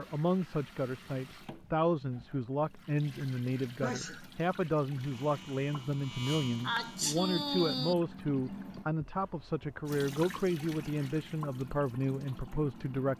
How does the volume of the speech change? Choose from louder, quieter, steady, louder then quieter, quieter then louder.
steady.